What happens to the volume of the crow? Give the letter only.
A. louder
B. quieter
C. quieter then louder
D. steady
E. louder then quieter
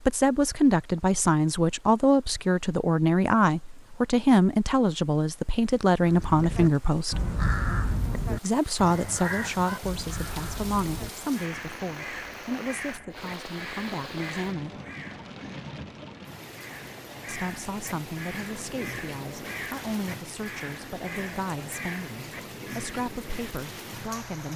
B.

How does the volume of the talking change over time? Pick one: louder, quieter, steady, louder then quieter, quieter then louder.
quieter.